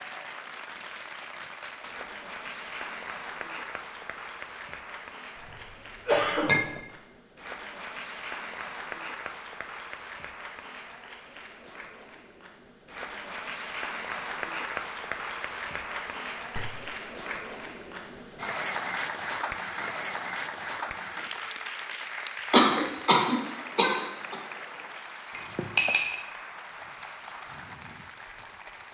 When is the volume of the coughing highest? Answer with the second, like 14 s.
23 s.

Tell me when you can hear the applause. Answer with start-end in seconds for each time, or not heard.
0.0-28.8.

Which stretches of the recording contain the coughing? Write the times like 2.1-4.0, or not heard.
5.4-6.8, 22.5-24.4.